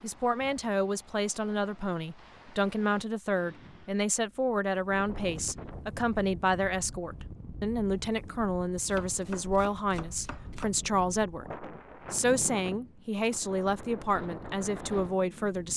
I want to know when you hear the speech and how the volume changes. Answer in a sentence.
The speech can be heard from 0.0 to 15.7 s, at a steady volume.